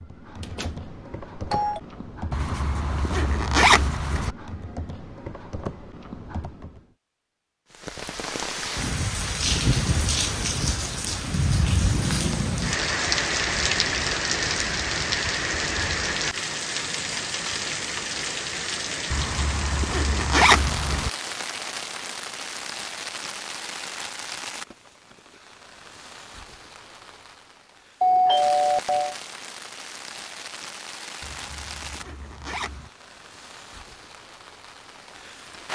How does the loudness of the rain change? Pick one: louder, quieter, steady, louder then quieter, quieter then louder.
quieter.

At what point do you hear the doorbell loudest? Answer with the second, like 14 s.
28 s.